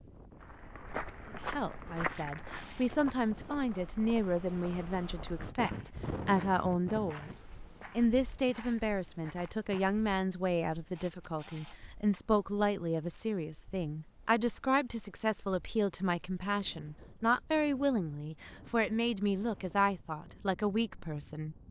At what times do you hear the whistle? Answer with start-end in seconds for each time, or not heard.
not heard.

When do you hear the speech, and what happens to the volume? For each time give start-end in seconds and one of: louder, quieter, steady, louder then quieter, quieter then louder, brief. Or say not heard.
1.3-21.6 steady.